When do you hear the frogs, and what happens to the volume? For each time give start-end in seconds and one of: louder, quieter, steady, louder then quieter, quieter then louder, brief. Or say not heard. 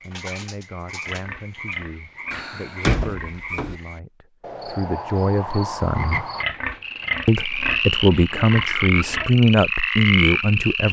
0.0-10.8 louder.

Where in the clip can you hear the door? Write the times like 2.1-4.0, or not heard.
2.3-3.8.